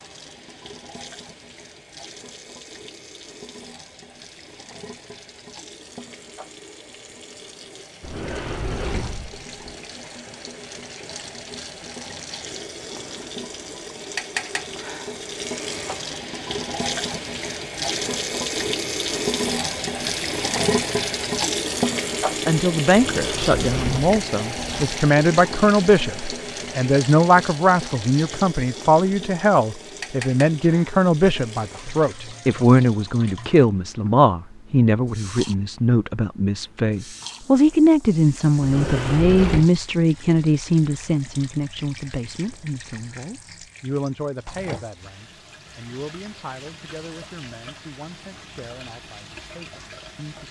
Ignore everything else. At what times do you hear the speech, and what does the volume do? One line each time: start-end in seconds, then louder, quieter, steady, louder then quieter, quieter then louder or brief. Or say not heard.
22.4-50.4 quieter.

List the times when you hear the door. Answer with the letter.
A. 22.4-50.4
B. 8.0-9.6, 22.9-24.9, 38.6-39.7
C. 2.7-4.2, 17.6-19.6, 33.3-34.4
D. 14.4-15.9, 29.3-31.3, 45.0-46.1
B.